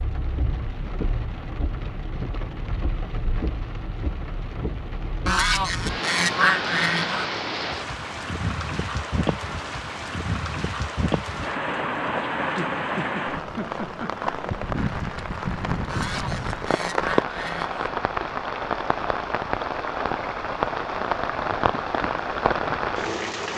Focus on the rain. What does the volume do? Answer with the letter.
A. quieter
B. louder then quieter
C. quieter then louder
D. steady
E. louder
E.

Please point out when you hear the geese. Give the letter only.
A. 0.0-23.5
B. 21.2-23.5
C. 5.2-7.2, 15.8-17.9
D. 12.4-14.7
C.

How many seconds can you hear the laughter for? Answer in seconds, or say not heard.
2 s.